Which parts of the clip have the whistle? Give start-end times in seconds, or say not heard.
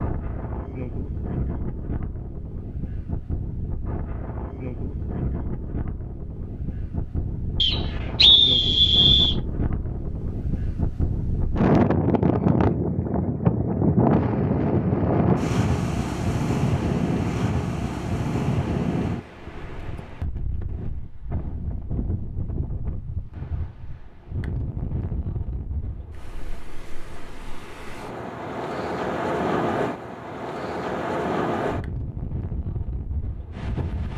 7.6-9.3.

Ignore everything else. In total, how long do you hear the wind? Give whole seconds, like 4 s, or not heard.
34 s.